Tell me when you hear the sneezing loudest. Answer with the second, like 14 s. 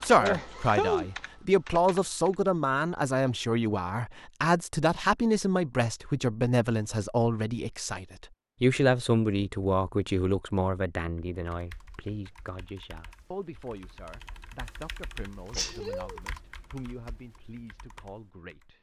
1 s.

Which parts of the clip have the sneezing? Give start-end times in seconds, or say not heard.
0.1-1.1, 15.5-16.2.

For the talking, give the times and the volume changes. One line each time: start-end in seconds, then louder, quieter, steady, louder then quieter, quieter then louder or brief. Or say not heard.
0.0-18.7 quieter.